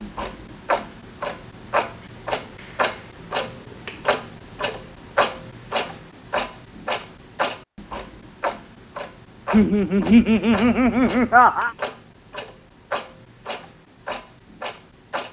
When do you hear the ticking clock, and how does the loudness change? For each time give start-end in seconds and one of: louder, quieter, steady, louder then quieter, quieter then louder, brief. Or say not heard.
0.0-15.2 quieter.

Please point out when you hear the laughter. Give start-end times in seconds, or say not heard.
9.5-11.7.